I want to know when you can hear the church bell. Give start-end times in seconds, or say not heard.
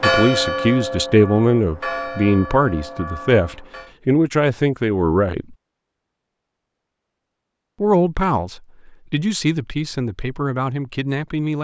0.0-3.9.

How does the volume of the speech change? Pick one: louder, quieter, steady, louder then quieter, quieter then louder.
quieter.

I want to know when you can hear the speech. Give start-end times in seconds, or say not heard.
0.0-5.5, 7.8-11.5.